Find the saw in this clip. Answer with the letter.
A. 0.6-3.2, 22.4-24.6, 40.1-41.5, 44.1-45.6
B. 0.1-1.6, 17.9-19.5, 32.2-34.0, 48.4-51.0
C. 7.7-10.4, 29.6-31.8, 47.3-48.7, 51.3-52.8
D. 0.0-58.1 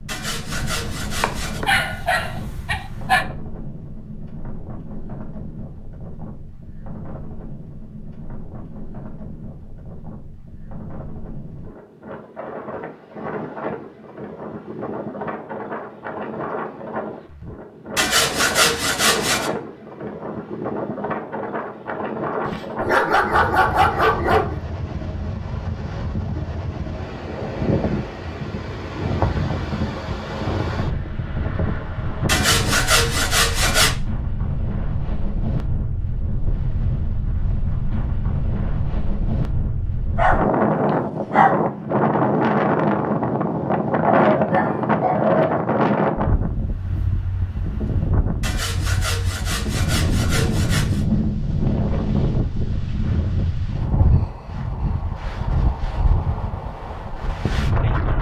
B.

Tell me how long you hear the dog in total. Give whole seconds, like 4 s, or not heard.
8 s.